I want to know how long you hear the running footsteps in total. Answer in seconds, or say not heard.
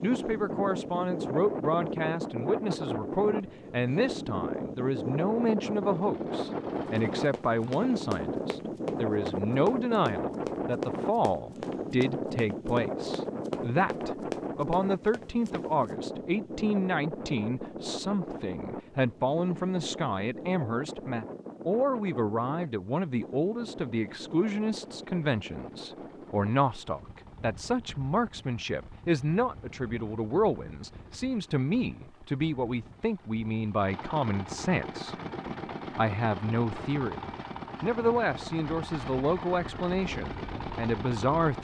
9 s.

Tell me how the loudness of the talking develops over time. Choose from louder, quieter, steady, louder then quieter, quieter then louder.
steady.